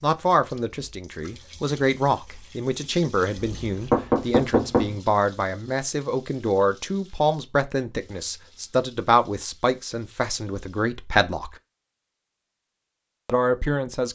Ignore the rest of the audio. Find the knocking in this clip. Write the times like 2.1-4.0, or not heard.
3.4-5.0.